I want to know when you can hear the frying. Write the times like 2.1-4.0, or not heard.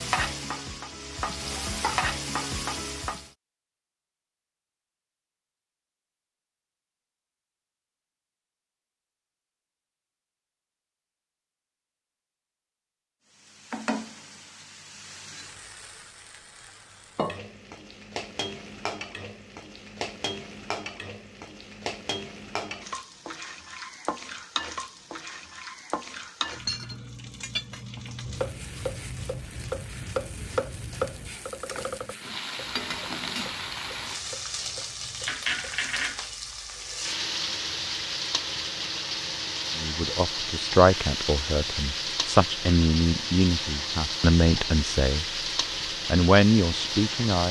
0.0-3.3, 13.3-47.4.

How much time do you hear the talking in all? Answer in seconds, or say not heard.
7 s.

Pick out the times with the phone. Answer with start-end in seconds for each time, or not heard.
not heard.